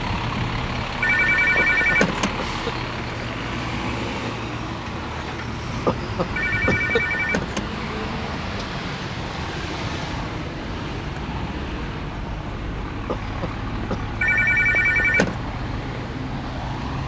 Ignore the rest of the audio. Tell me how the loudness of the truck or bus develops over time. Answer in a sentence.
The volume of the truck or bus stays about the same.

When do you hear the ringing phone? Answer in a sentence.
The ringing phone can be heard from 1.0 to 2.4 s, from 6.3 to 7.7 s and from 14.2 to 15.3 s.